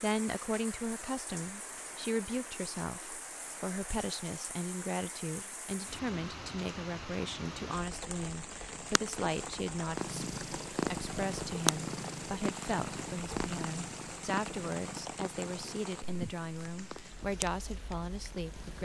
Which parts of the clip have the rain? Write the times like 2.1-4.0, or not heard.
0.0-18.8.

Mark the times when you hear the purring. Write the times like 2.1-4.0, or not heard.
8.8-18.8.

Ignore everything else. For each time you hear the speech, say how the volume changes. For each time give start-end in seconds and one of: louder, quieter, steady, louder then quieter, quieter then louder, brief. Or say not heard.
0.0-18.8 steady.